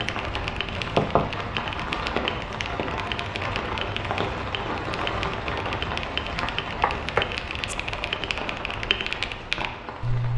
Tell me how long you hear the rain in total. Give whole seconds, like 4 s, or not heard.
10 s.